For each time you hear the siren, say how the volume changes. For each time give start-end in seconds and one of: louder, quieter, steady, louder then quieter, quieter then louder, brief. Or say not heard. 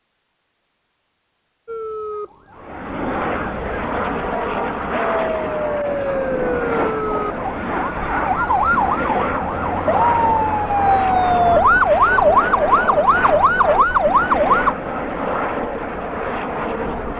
1.6-14.8 louder.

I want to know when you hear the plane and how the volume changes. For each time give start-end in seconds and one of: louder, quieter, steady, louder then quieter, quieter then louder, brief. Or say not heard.
2.5-17.1 steady.